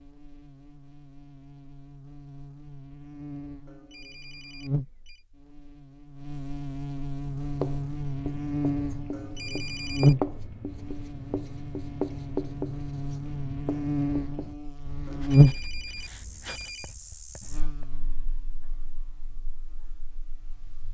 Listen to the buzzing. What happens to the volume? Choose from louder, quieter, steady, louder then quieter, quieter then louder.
louder then quieter.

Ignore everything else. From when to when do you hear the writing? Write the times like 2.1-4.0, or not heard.
7.2-17.9.